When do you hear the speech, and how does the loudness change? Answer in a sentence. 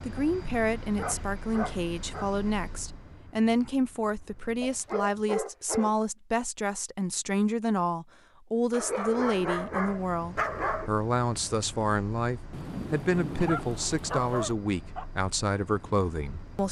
You can hear the speech from 0.0 to 16.6 s, at a steady volume.